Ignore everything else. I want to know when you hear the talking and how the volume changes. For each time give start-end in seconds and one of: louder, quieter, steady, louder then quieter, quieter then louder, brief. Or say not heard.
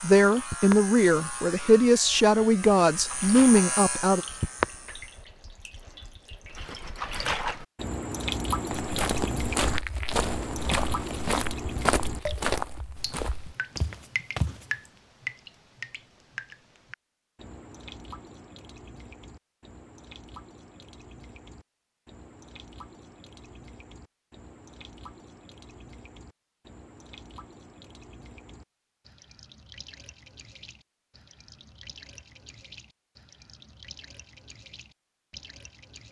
0.0-4.2 steady.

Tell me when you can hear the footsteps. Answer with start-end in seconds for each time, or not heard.
8.7-14.7.